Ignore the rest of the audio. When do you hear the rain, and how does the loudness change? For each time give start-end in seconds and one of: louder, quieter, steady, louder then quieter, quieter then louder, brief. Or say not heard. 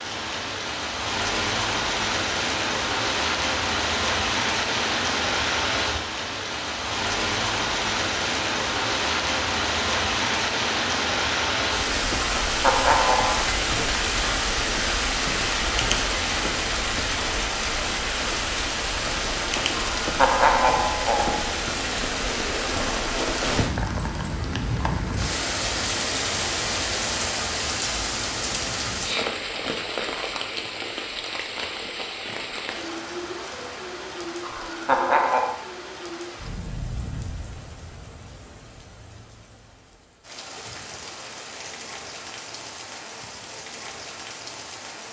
0.0-45.0 quieter.